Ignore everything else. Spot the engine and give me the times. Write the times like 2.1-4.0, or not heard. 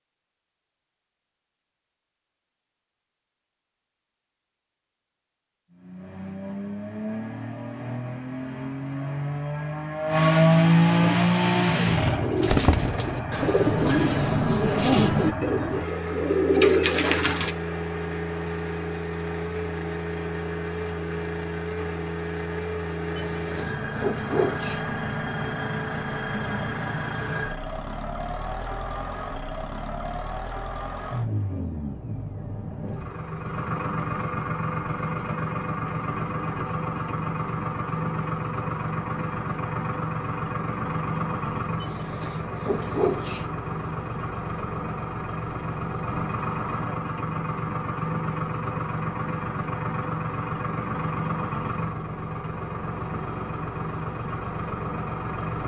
5.7-55.6.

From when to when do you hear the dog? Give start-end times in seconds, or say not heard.
23.1-24.8, 41.8-43.5.